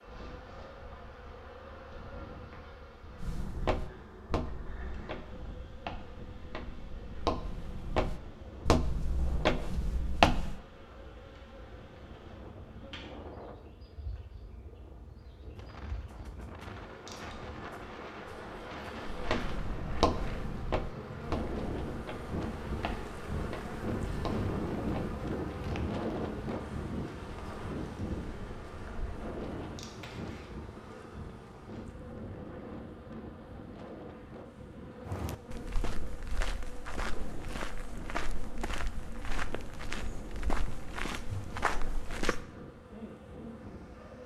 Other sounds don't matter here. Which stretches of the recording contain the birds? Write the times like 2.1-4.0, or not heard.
not heard.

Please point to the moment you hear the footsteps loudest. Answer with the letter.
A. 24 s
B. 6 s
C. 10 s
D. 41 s
C.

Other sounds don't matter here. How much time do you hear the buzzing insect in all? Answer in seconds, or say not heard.
44 s.